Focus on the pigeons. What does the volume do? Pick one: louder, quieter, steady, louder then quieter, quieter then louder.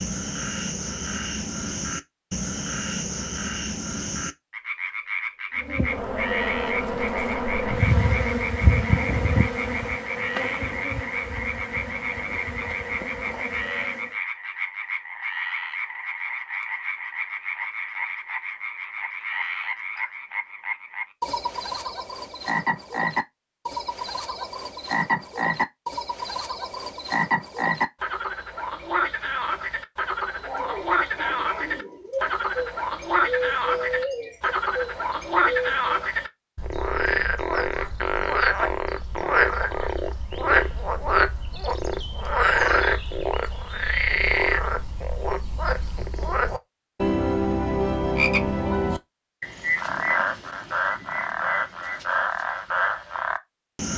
louder then quieter.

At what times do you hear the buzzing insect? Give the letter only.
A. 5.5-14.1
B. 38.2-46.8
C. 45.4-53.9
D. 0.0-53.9
A.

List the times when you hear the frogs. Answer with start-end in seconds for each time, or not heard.
0.0-53.9.